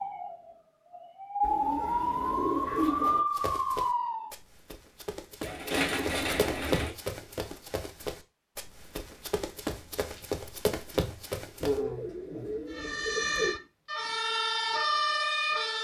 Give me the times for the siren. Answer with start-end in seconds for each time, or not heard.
0.0-4.3, 12.7-15.7.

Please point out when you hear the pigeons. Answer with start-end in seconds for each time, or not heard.
1.4-3.2, 5.4-6.9, 11.6-13.6.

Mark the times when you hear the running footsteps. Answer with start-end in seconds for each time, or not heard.
3.3-11.8.